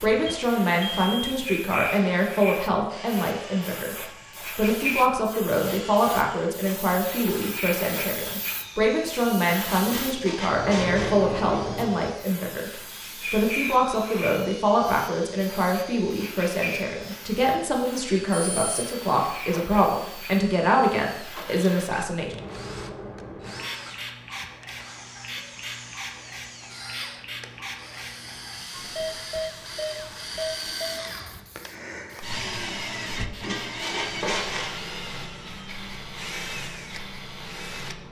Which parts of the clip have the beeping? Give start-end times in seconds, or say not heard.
0.2-1.6, 18.3-18.9, 28.7-31.2.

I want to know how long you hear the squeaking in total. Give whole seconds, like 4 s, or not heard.
3 s.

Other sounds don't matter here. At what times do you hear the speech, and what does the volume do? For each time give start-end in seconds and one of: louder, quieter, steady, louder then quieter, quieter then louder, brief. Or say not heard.
0.0-22.4 steady.